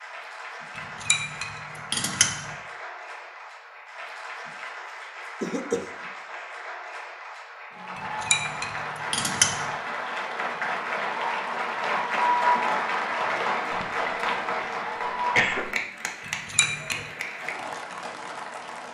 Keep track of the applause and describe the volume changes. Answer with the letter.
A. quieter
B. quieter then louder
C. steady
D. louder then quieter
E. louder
D.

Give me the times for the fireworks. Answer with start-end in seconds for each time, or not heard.
not heard.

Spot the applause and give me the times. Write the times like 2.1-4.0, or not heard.
0.0-18.8.